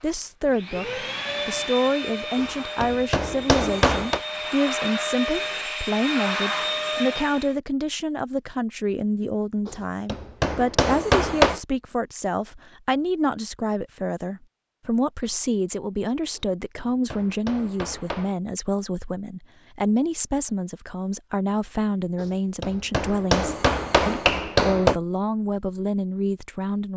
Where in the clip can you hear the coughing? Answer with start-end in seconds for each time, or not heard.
not heard.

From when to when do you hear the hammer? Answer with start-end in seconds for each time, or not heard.
2.4-4.2, 9.7-11.6, 16.4-18.4, 22.2-24.9.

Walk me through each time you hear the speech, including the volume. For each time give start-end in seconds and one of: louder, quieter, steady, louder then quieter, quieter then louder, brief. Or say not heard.
0.0-26.9 steady.